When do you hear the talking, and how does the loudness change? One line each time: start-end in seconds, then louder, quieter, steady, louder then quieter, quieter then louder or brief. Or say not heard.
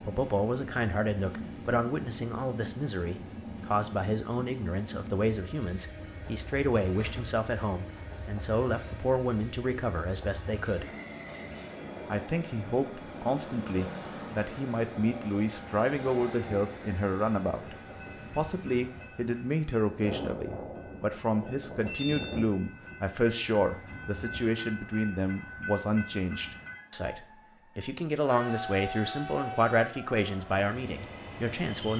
0.0-10.9 steady
12.1-31.9 steady.